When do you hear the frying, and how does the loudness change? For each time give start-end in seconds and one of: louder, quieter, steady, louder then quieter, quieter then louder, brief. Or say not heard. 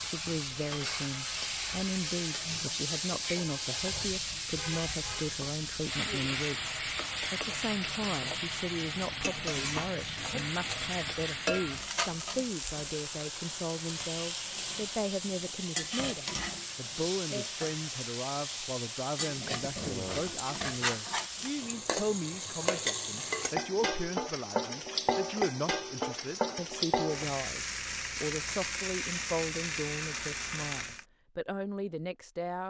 0.0-31.1 steady.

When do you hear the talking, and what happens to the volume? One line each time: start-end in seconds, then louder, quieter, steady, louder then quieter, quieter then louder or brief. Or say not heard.
0.1-32.6 steady.